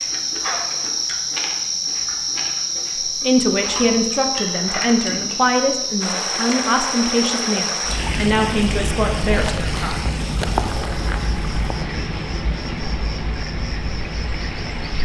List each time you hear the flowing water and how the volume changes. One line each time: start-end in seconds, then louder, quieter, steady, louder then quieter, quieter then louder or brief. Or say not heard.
6.0-15.0 quieter.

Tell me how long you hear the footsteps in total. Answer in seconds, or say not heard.
not heard.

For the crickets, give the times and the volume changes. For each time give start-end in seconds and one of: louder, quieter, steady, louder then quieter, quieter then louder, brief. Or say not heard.
0.0-15.0 quieter.